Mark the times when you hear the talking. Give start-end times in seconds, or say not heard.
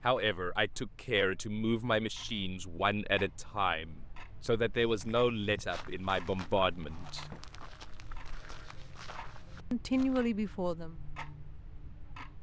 0.0-7.2, 9.7-10.9.